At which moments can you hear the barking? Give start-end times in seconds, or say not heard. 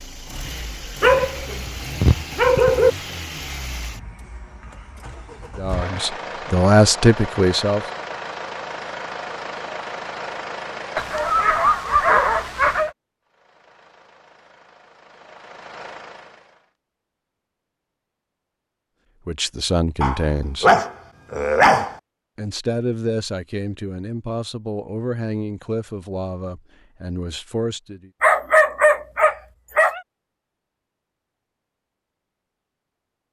1.0-2.9, 10.9-12.9, 20.0-21.9, 28.2-30.0.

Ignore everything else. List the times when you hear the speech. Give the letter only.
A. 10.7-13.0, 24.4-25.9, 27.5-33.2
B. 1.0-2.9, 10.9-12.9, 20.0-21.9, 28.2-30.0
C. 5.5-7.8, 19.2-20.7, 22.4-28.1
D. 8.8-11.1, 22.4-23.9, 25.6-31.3
C.